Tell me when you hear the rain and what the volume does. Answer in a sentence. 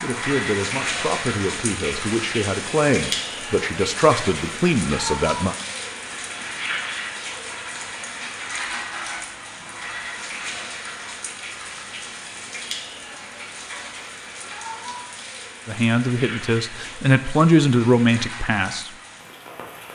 You can hear the rain from 0.0 to 19.9 s, getting quieter.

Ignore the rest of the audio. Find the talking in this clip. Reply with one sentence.
The talking can be heard from 0.0 to 5.5 s and from 15.7 to 18.9 s.